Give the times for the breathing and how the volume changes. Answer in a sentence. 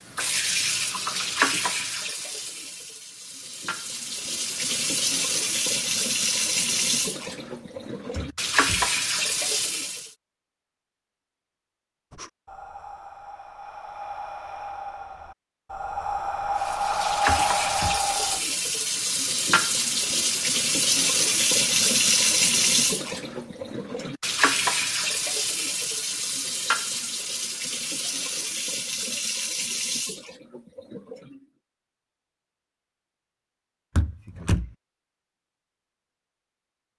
You can hear the breathing from 12.1 to 18.4 s, getting louder.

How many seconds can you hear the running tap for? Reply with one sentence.
You can hear the running tap for 25 seconds altogether.